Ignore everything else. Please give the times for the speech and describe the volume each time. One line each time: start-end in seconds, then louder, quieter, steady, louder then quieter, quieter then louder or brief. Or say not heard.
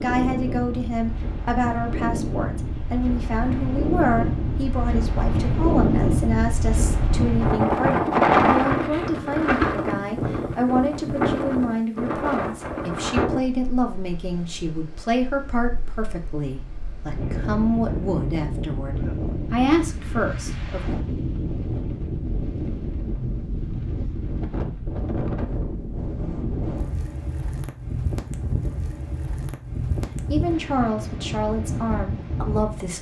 0.0-20.9 steady
30.3-32.9 brief.